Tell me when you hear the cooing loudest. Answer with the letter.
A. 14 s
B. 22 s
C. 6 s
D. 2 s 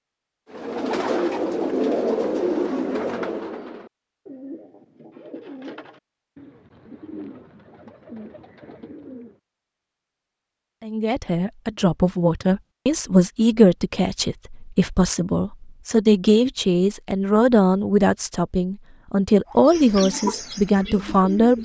D.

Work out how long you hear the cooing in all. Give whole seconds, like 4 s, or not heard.
11 s.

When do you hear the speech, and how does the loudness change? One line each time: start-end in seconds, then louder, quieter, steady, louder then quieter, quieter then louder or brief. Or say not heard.
10.8-21.5 steady.